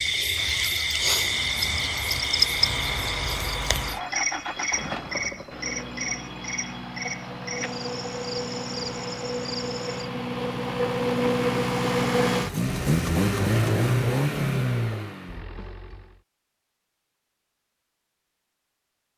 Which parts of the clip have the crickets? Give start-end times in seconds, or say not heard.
0.0-10.1.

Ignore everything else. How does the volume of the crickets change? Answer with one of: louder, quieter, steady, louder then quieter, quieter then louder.
quieter.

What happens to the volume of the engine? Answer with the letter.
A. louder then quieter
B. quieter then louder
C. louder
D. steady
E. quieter
C.